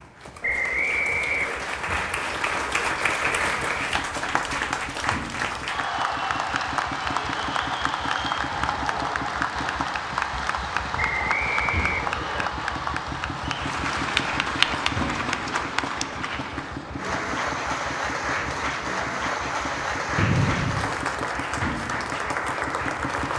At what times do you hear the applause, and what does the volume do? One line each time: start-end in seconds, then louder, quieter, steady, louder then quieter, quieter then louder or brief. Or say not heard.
0.0-23.3 steady.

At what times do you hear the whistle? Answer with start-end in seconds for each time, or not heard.
0.4-1.6, 10.9-12.5, 20.1-20.9.